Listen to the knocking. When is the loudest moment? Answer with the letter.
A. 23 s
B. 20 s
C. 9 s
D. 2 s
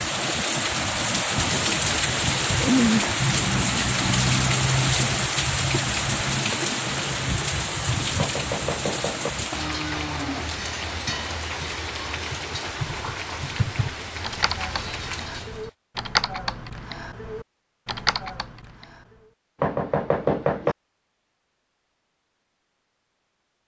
B.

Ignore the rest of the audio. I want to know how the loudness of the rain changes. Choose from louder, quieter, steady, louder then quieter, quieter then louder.
quieter.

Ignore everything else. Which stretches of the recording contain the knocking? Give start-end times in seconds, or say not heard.
8.2-9.3, 19.6-20.8.